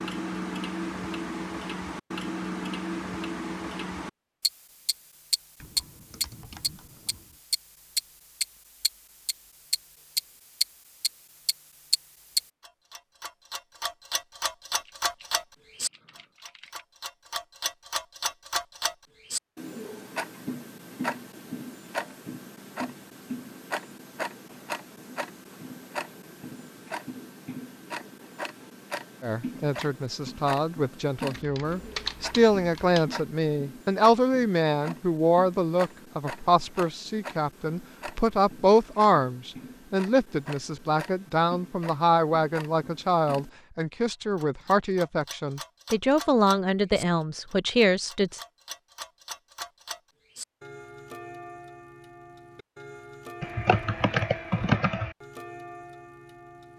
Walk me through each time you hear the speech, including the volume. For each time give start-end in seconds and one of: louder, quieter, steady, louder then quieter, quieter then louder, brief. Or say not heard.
29.2-48.4 steady.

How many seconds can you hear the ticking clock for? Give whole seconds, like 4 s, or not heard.
57 s.